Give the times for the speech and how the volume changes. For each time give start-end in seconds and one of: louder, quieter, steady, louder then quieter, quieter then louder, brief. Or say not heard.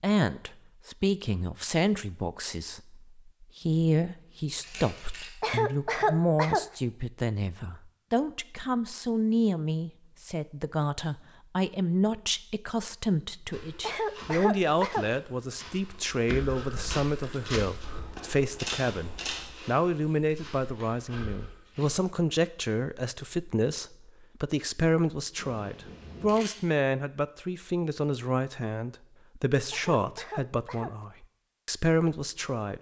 0.0-32.7 steady.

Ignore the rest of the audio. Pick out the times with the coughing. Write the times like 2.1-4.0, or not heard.
5.4-6.7, 13.8-15.1, 29.7-30.9.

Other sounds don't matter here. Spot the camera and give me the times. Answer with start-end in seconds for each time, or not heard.
4.6-5.3, 17.8-19.5, 25.4-26.6.